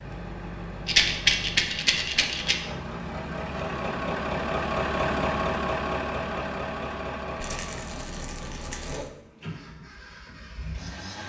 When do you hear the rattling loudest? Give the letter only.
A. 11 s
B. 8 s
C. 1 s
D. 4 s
C.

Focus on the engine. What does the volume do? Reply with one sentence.
The volume of the engine goes up, then down.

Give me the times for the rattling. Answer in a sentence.
You can hear the rattling from 0.8 to 2.5 s and from 7.4 to 9.1 s.